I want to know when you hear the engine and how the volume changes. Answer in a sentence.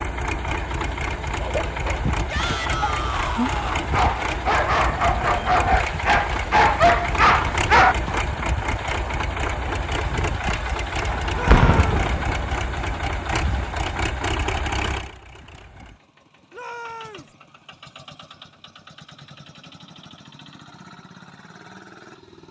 The engine can be heard from 0.0 to 22.4 s, getting quieter.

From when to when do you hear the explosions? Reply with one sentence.
You can hear the explosions from 11.4 to 12.7 s.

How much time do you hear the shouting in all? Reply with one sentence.
You can hear the shouting for 3 seconds altogether.